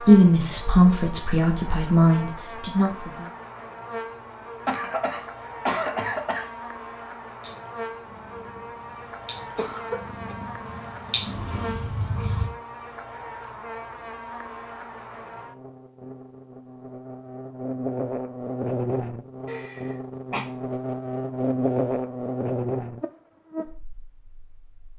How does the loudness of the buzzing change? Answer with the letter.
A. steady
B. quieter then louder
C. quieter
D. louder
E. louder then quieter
D.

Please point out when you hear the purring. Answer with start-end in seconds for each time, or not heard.
7.4-12.5.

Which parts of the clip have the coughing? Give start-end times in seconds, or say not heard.
4.7-6.5, 9.6-10.3, 19.4-20.4.